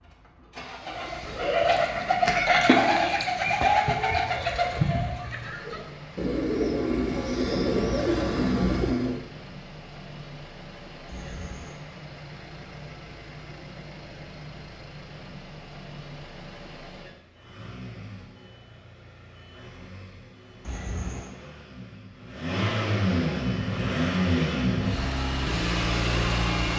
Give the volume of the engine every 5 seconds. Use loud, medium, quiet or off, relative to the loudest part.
quiet, quiet, quiet, quiet, loud, loud.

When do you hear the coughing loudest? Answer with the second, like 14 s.
21 s.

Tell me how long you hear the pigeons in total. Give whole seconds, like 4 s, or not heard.
8 s.